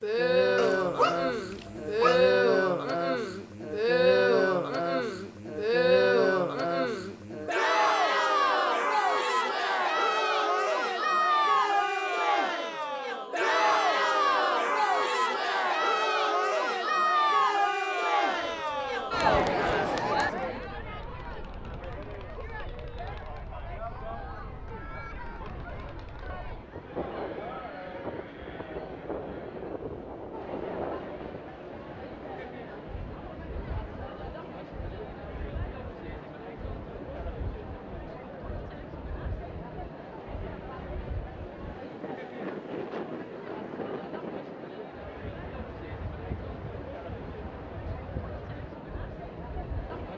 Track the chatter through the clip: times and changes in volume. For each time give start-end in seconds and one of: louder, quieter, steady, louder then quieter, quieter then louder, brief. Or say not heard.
0.0-50.1 quieter.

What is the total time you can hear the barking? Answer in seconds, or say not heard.
2 s.